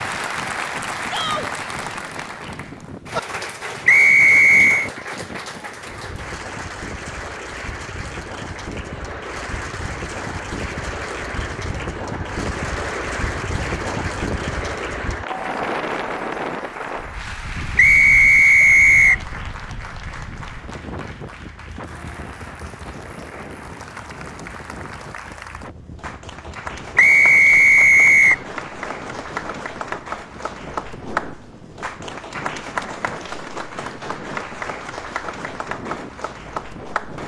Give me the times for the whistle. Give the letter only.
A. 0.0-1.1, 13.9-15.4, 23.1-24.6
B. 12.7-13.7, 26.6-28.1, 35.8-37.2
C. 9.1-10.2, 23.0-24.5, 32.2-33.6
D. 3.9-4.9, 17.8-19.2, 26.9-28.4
D.